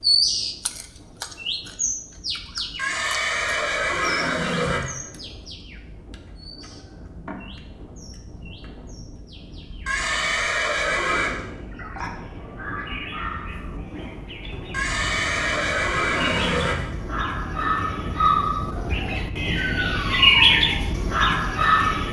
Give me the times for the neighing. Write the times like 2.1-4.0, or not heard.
2.8-4.8, 9.8-11.3, 14.7-16.8.